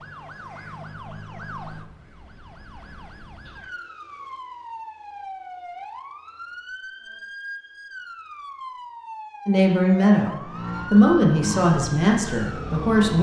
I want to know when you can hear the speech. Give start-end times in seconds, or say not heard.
9.4-13.1.